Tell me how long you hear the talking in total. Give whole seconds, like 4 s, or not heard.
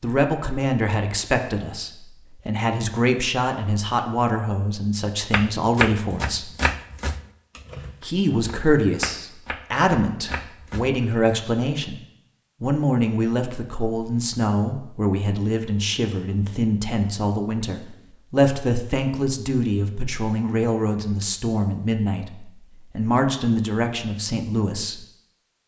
23 s.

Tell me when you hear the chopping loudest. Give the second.
6 s.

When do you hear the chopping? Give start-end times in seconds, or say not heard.
5.3-10.9.